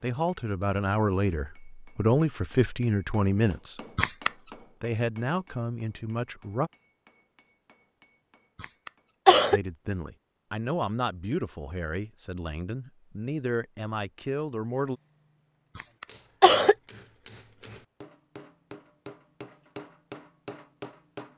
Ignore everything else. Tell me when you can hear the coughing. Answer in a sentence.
You can hear the coughing from 4.0 to 4.5 s, from 8.6 to 9.6 s and from 15.8 to 16.8 s.